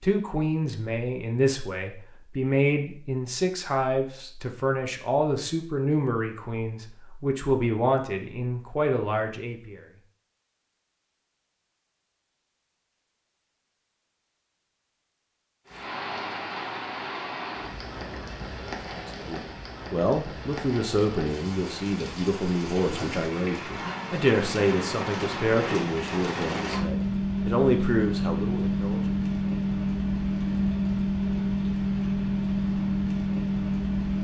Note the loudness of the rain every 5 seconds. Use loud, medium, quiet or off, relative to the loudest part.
off, off, off, medium, medium, loud, loud.